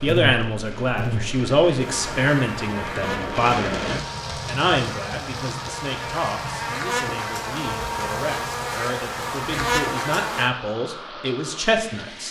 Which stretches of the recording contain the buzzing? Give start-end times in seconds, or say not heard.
0.0-10.5.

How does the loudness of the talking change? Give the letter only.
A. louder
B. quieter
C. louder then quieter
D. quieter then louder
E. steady
D.